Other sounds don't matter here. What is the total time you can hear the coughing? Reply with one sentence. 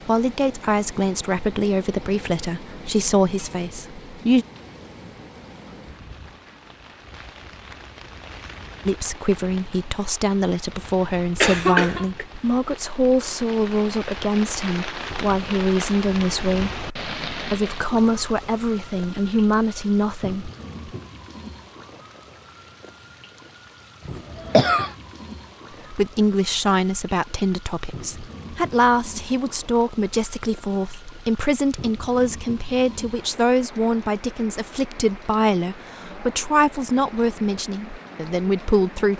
You can hear the coughing for 2 seconds altogether.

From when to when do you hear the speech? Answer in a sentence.
You can hear the speech from 0.1 to 4.5 s, from 8.8 to 20.5 s and from 25.9 to 39.1 s.